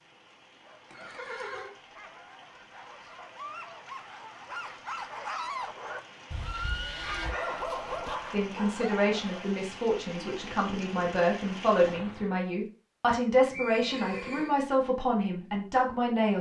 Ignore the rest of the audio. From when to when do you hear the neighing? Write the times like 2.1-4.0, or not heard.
0.8-1.7, 6.3-7.3, 13.5-14.6.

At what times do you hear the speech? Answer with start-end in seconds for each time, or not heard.
8.3-16.3.